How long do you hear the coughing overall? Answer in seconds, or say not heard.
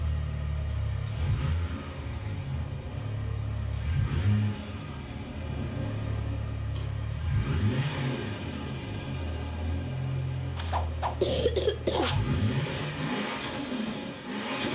2 s.